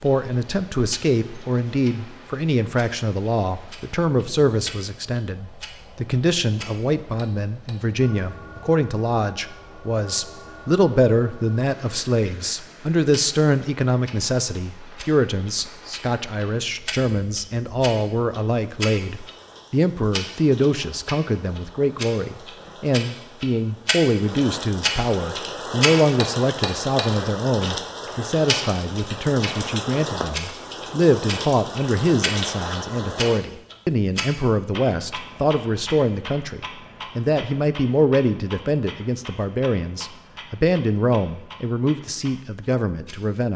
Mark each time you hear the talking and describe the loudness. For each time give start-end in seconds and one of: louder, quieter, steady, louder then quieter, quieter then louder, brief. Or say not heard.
0.0-43.5 steady.